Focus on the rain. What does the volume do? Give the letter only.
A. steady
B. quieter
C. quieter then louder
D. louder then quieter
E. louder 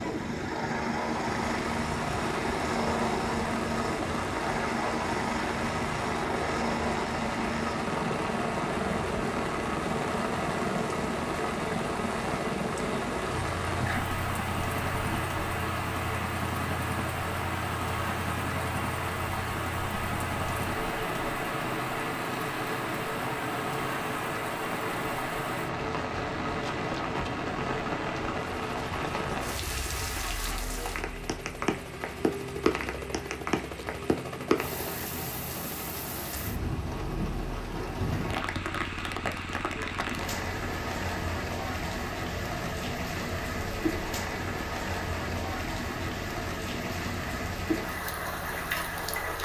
A.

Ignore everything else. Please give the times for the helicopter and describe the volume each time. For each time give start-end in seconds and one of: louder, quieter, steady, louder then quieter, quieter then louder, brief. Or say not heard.
0.0-49.4 quieter.